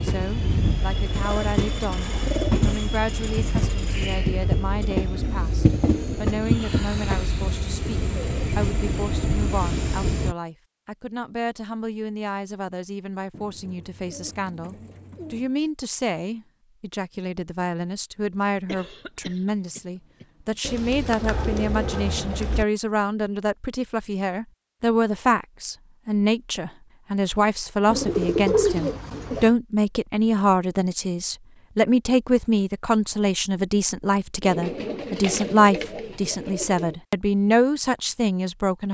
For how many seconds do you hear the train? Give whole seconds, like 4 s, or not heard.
10 s.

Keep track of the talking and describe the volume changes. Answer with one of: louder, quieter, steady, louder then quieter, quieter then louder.
louder.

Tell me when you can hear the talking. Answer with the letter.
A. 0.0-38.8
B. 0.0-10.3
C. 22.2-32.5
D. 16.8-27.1
A.